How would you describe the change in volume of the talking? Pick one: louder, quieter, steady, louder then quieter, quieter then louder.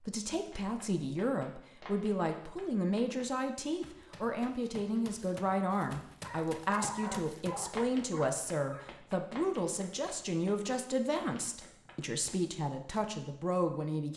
steady.